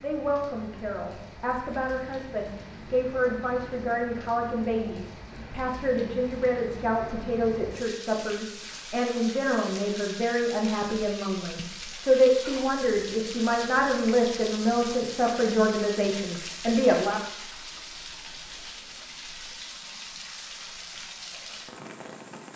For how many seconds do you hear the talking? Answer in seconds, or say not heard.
17 s.